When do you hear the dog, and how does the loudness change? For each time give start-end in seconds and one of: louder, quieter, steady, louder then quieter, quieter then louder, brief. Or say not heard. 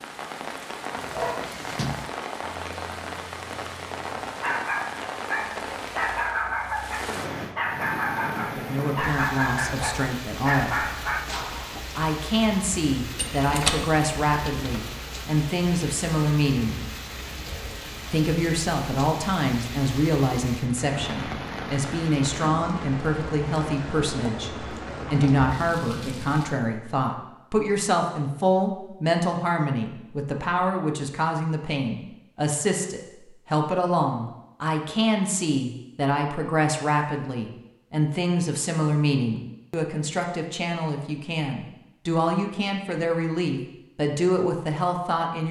0.9-11.8 louder.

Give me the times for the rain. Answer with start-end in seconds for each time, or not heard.
0.0-26.6.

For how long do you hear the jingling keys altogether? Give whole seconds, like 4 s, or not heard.
2 s.